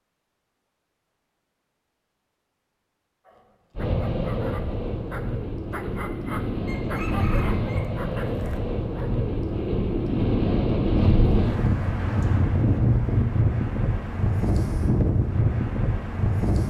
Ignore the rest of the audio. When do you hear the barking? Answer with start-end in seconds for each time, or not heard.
3.2-9.2.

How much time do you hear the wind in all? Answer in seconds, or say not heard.
13 s.